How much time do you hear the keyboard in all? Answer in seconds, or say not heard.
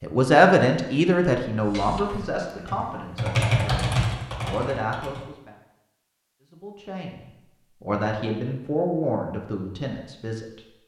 4 s.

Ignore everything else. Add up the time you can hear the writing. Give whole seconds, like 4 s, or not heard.
not heard.